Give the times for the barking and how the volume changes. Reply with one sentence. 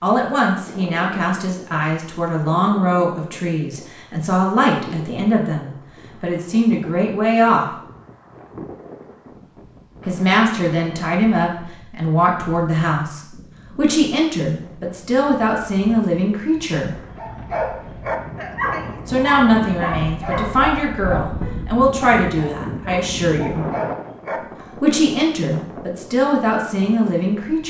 You can hear the barking from 17.1 to 24.7 s, getting quieter then louder.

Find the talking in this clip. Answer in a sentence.
You can hear the talking from 0.0 to 7.7 s, from 10.1 to 16.9 s, from 19.1 to 23.6 s and from 24.8 to 27.6 s.